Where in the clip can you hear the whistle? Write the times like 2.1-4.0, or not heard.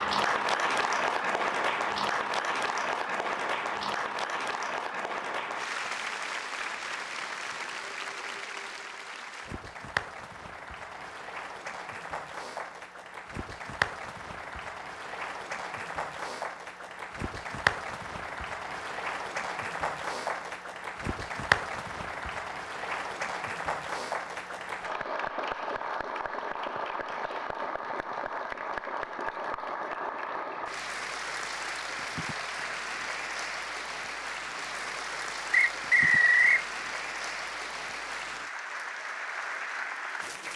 35.5-36.6.